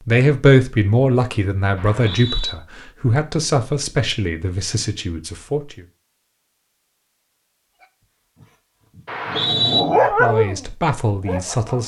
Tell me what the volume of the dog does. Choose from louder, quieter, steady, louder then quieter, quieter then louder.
louder then quieter.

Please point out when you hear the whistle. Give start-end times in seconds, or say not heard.
1.8-2.5, 9.1-9.8.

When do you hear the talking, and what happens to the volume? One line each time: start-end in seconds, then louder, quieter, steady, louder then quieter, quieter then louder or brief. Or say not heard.
0.1-5.8 quieter
10.0-11.8 brief.